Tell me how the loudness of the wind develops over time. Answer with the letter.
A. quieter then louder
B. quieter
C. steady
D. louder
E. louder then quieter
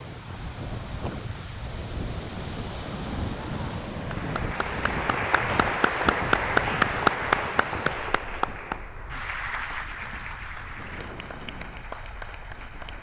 B.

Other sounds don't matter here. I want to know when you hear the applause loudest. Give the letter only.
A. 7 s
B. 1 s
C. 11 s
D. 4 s
A.